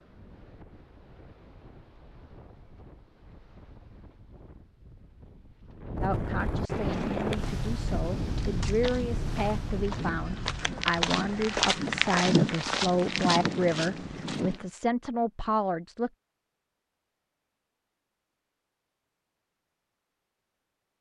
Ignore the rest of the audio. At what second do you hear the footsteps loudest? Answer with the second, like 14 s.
12 s.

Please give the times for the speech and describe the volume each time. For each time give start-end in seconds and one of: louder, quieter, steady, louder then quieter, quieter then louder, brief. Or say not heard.
6.0-16.1 louder.